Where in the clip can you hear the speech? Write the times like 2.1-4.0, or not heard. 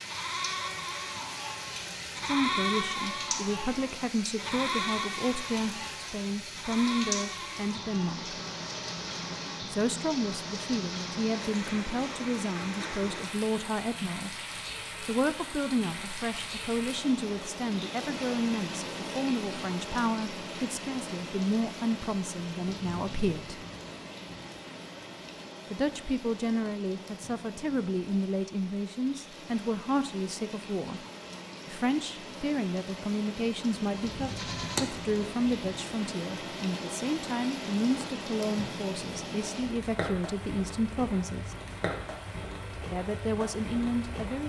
2.1-8.3, 9.6-14.3, 15.1-23.6, 25.7-31.0, 31.6-41.5, 42.9-44.4.